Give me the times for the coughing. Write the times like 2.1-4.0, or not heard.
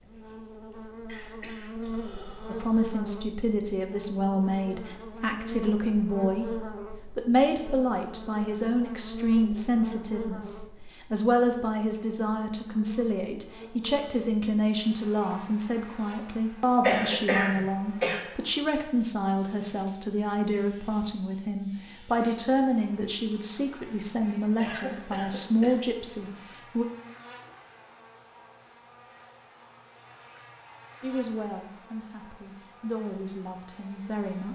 1.1-2.8, 16.8-18.2, 24.6-25.8.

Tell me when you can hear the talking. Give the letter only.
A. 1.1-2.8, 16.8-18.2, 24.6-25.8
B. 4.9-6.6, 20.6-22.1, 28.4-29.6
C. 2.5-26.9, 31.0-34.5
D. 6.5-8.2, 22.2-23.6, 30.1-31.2
C.